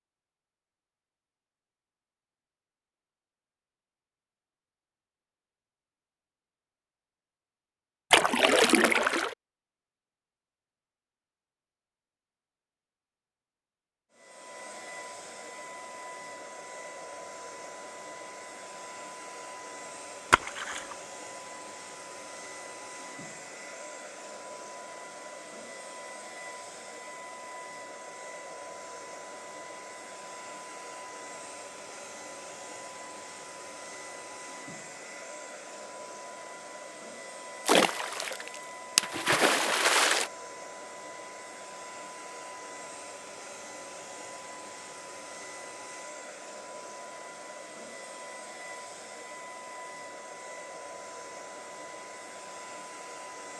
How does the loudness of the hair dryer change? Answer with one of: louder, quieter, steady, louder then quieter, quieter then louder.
steady.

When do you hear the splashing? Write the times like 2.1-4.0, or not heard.
8.1-9.3, 20.3-20.9, 37.6-40.3.